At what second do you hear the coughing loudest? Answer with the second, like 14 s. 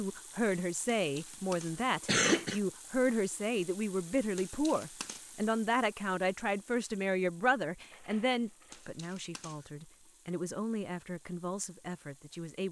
2 s.